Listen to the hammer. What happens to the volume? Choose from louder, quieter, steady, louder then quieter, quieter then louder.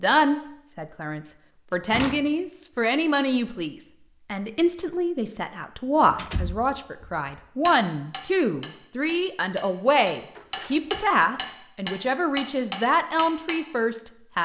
louder.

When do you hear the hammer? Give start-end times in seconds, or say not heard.
7.7-13.6.